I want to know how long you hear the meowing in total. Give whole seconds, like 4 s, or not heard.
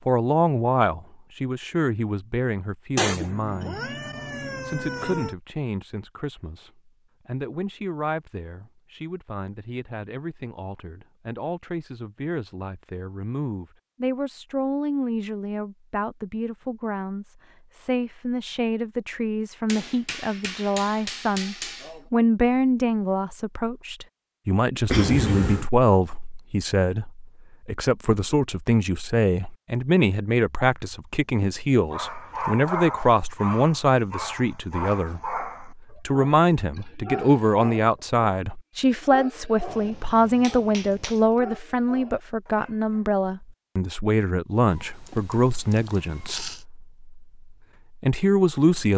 5 s.